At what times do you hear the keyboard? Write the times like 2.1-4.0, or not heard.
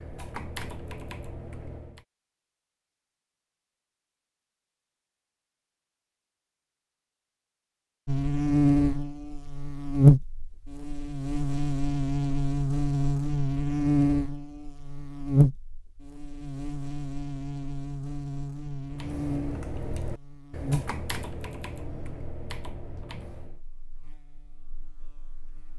0.0-2.0, 18.9-23.6.